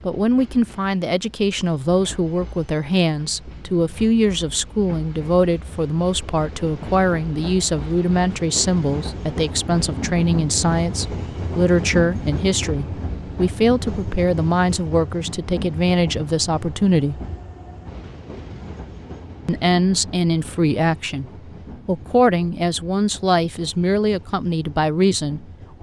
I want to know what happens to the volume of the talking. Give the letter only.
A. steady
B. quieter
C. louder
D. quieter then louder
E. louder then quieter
A.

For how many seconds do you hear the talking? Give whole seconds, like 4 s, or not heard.
23 s.